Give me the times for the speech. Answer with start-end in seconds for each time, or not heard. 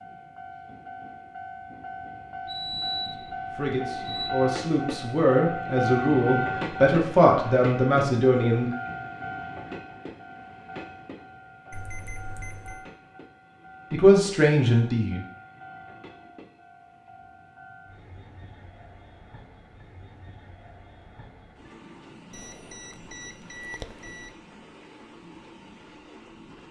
3.5-8.7, 13.9-15.2.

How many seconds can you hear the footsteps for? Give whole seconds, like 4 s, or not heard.
not heard.